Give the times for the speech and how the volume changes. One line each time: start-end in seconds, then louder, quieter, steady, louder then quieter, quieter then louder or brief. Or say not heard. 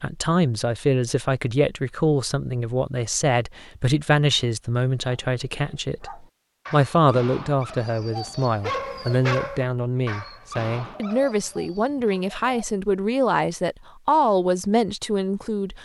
0.0-15.8 steady.